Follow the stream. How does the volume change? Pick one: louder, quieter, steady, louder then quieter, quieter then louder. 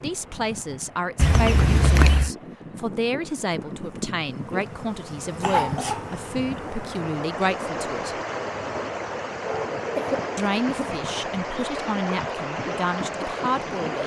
louder.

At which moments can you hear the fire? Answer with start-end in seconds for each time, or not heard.
not heard.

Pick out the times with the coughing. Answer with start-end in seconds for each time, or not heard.
1.1-2.3, 5.4-6.2, 9.9-10.9.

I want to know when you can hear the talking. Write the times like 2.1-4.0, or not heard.
0.0-8.2, 10.3-14.0.